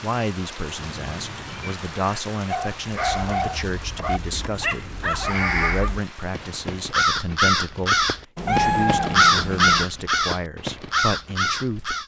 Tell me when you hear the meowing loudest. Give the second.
9 s.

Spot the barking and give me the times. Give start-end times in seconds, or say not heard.
2.5-6.0.